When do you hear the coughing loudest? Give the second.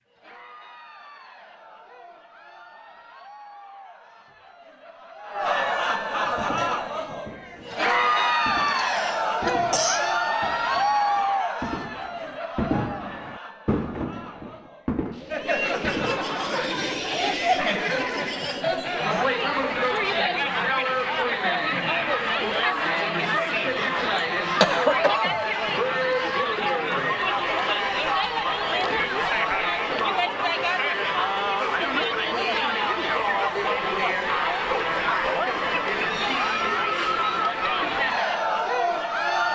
25 s.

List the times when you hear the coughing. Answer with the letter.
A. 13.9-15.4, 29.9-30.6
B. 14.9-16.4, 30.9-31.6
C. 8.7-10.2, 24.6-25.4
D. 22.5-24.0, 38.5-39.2
C.